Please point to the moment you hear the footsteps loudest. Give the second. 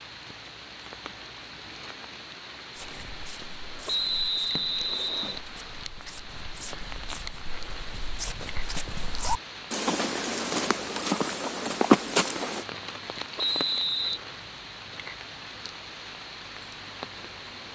12 s.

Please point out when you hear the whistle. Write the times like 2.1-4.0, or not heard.
3.9-5.4, 13.3-14.2.